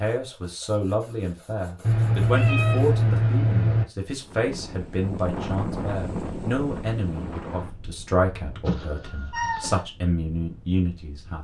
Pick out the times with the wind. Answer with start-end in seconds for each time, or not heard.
4.2-11.3.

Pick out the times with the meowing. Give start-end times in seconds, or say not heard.
1.8-3.9, 8.7-9.8.